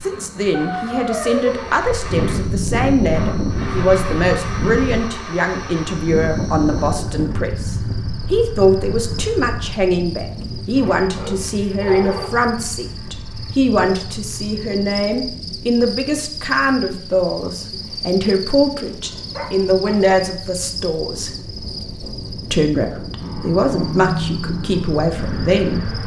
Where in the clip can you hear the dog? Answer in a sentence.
The dog can be heard from 0.5 to 1.7 s, from 10.8 to 12.3 s and from 19.0 to 20.1 s.